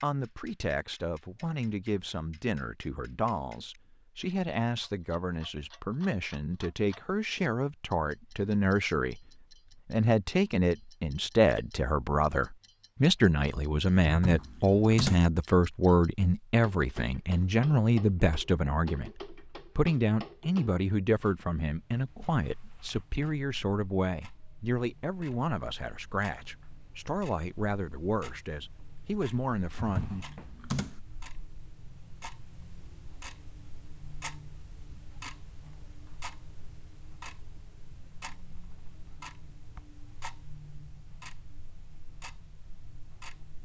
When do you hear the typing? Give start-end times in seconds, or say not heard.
14.1-15.2, 29.8-30.9.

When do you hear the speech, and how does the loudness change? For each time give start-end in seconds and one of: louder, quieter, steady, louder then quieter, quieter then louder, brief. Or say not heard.
0.0-30.3 louder then quieter.